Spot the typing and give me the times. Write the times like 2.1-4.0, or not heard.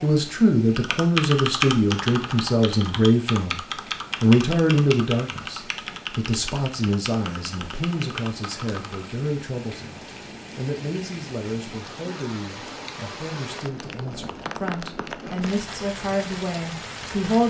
0.8-9.1.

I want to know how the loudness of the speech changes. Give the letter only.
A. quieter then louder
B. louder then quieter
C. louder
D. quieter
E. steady
D.